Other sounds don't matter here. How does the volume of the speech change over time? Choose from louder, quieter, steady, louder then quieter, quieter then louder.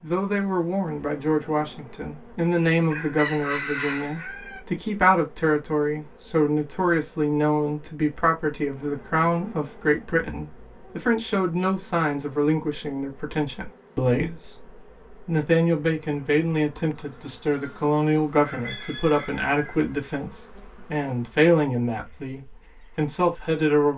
steady.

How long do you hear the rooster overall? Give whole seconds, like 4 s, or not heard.
5 s.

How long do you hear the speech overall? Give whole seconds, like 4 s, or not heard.
24 s.